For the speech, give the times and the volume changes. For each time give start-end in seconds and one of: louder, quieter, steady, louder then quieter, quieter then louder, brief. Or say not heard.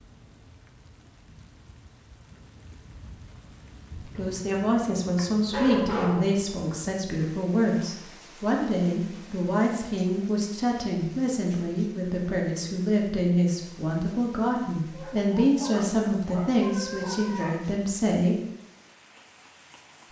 4.0-18.4 steady.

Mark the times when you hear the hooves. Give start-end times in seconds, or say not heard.
not heard.